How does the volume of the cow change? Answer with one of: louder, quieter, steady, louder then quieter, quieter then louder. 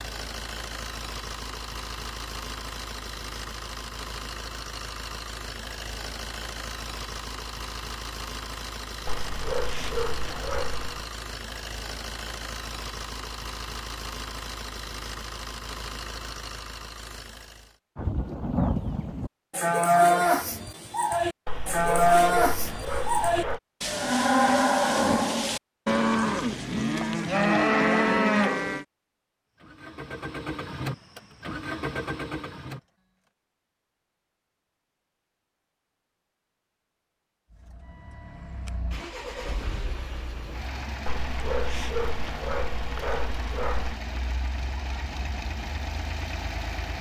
steady.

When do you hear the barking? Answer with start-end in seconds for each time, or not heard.
9.1-11.1, 21.4-23.6, 41.0-44.0.